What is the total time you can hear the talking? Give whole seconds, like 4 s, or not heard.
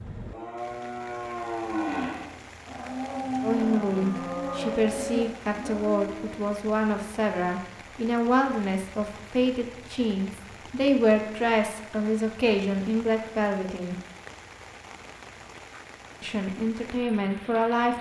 12 s.